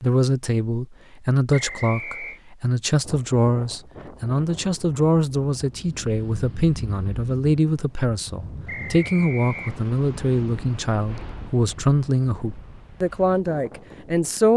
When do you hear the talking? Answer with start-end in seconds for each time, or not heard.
0.0-14.5.